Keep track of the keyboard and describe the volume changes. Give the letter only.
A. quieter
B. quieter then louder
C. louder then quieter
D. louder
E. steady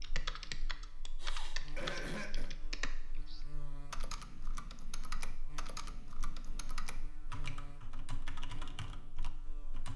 A.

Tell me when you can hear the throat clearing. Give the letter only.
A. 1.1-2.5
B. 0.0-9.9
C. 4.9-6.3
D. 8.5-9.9
A.